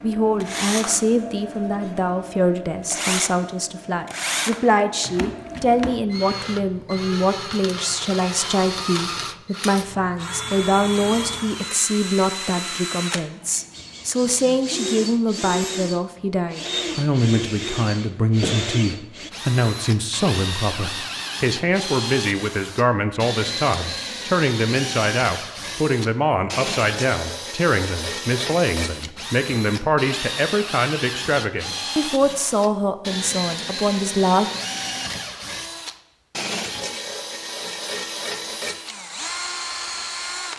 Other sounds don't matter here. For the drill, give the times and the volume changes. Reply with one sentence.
You can hear the drill from 0.0 to 40.5 s, at a steady volume.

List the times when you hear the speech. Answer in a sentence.
The speech can be heard from 0.0 to 34.5 s.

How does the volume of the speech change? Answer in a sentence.
The volume of the speech stays about the same.